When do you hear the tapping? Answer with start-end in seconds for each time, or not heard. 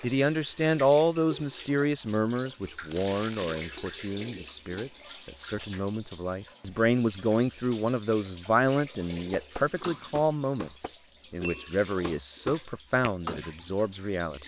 9.3-14.4.